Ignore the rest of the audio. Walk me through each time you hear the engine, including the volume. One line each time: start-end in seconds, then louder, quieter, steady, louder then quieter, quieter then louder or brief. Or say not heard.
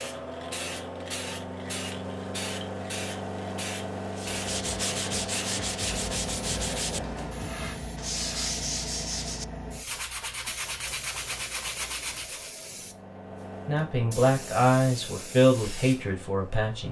0.0-7.5 steady
12.6-16.8 quieter.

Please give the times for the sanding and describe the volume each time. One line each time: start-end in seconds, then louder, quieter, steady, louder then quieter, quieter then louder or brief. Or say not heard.
4.2-12.6 steady.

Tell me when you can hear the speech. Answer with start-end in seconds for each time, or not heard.
13.7-16.8.